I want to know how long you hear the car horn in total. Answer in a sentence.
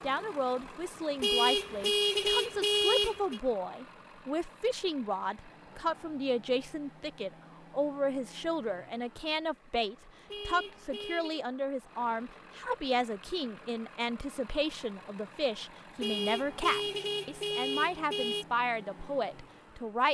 You can hear the car horn for 6 seconds altogether.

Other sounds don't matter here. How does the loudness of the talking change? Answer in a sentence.
The loudness of the talking stays about the same.